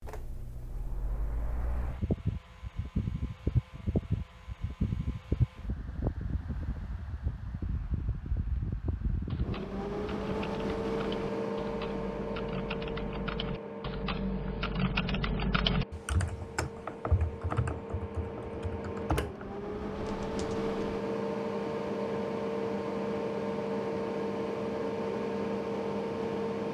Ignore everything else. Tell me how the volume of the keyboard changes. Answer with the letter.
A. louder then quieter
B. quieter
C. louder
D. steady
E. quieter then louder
A.